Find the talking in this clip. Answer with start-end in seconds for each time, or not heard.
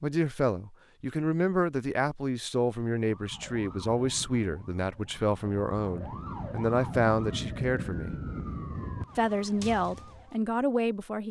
0.0-8.2, 9.2-11.2.